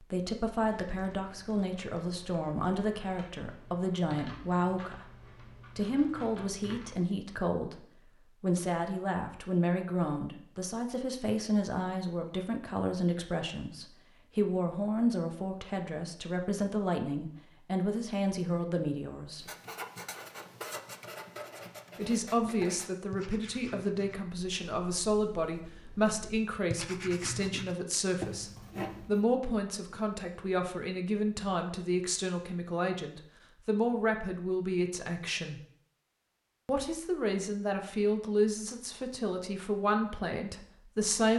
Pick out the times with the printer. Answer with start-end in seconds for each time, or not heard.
not heard.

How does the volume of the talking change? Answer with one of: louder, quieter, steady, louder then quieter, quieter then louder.
steady.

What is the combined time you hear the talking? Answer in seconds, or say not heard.
37 s.